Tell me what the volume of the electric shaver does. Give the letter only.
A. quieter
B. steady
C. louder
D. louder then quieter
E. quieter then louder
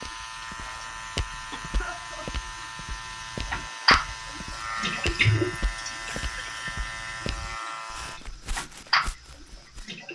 B.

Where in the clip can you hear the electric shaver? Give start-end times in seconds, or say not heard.
0.0-8.2.